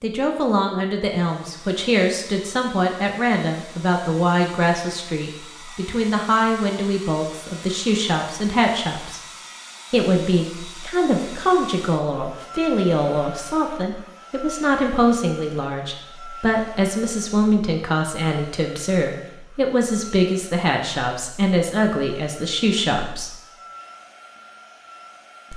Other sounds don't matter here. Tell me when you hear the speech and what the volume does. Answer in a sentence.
The speech can be heard from 0.0 to 9.2 s, at a steady volume; and from 9.9 to 23.4 s, at a steady volume.